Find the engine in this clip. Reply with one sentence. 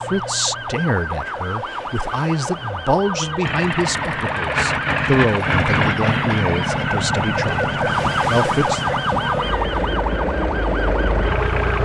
The engine can be heard from 3.4 to 11.8 s.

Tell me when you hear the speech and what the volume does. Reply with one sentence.
You can hear the speech from 0.0 to 8.8 s, at a steady volume.